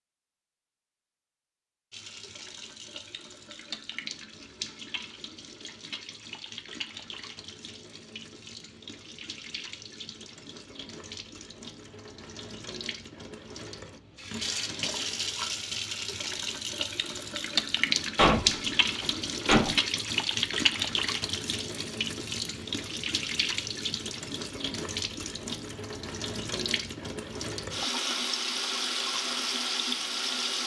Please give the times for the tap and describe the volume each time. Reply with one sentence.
The tap can be heard from 1.9 to 30.6 s, getting louder.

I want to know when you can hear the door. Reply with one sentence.
The door can be heard from 18.1 to 19.8 s.